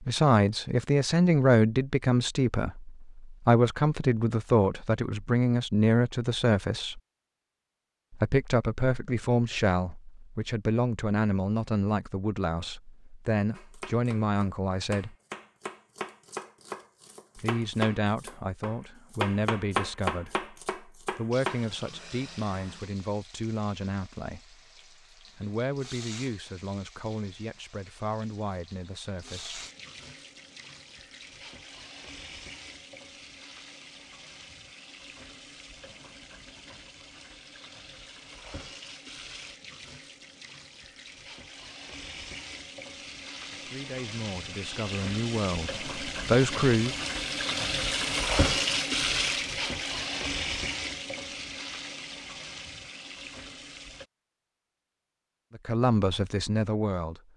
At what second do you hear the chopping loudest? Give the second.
20 s.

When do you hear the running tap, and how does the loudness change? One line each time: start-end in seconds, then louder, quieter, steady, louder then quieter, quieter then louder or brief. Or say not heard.
21.3-54.0 louder.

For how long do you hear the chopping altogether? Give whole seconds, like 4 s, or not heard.
8 s.